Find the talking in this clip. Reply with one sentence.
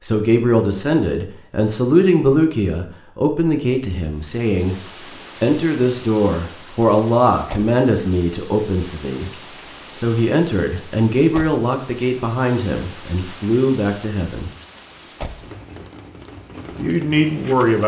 You can hear the talking from 0.0 to 4.8 s, from 5.4 to 9.3 s, from 9.9 to 14.5 s and from 16.8 to 17.8 s.